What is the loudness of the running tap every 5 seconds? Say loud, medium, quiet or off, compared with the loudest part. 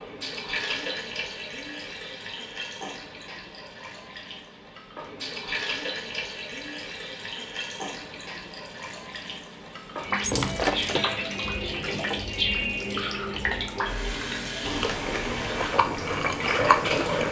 medium, medium, loud, loud.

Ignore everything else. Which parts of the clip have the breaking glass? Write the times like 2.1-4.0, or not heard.
10.2-11.1.